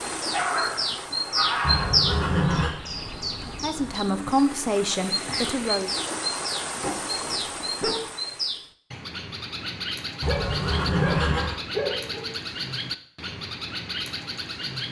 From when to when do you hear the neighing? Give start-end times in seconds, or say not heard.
1.6-2.8, 10.2-11.6.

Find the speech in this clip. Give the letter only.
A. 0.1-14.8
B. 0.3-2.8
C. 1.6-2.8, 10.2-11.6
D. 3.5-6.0
D.